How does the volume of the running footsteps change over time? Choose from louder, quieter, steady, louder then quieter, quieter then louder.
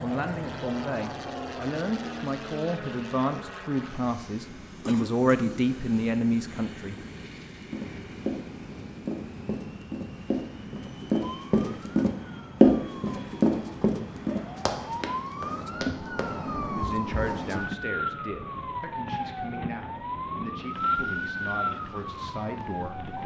louder then quieter.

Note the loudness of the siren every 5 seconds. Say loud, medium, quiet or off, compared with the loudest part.
off, off, medium, loud, loud.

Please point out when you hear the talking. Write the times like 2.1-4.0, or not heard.
0.0-7.0, 16.7-23.2.